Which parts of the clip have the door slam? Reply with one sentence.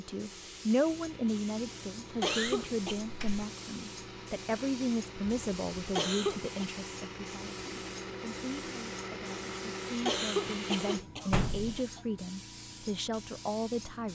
You can hear the door slam from 2.2 to 3.5 s and from 11.3 to 11.8 s.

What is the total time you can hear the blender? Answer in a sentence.
You can hear the blender for 11 seconds altogether.